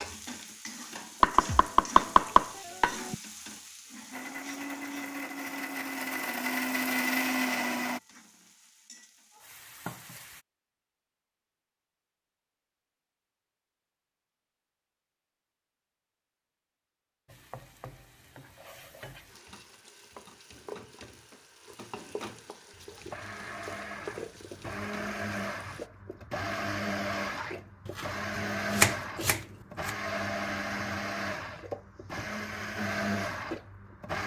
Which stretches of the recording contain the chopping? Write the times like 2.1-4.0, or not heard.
1.2-3.1, 27.9-29.9.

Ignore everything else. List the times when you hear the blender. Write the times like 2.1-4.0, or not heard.
4.1-8.0, 22.7-34.2.